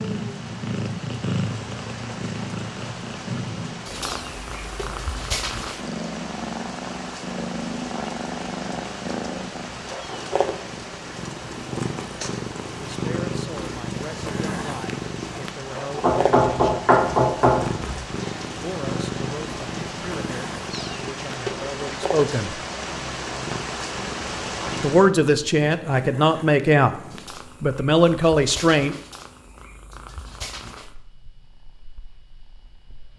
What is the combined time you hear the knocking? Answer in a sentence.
You can hear the knocking for 2 seconds altogether.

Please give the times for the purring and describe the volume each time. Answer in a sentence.
You can hear the purring from 0.0 to 33.1 s, getting quieter.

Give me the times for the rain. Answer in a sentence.
The rain can be heard from 0.0 to 25.1 s.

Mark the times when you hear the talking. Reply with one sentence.
You can hear the talking from 12.8 to 16.8 s, from 18.5 to 22.5 s, from 24.8 to 26.9 s and from 27.6 to 29.0 s.